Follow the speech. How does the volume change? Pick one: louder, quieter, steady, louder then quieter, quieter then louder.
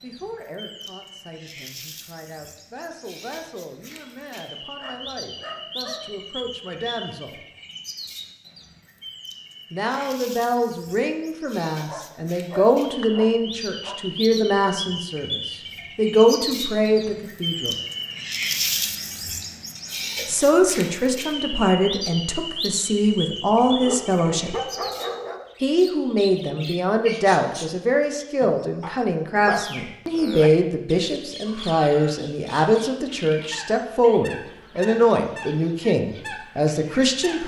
louder.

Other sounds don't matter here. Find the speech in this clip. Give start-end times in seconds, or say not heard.
0.0-7.3, 9.7-17.8, 20.2-24.6, 25.6-37.4.